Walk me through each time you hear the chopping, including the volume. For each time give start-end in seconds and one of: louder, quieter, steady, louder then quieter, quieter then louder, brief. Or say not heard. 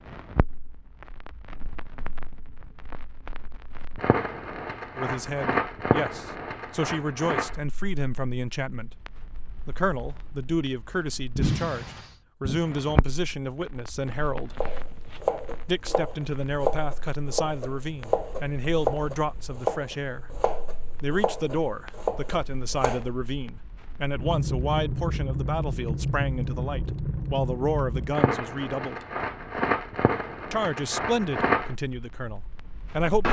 14.6-23.1 steady.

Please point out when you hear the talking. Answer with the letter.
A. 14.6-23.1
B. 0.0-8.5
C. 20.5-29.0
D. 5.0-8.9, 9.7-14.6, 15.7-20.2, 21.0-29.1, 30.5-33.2
D.